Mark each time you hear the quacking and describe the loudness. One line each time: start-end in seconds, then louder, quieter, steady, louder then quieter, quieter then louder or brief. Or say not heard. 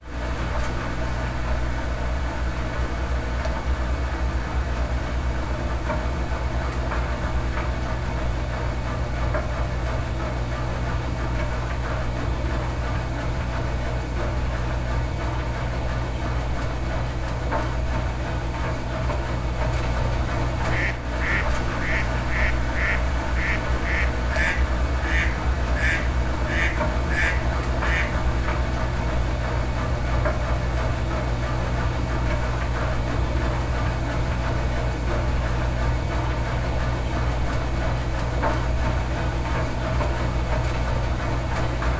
20.6-28.2 steady.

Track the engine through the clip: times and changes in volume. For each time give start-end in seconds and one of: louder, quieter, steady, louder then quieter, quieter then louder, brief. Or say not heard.
0.0-41.9 steady.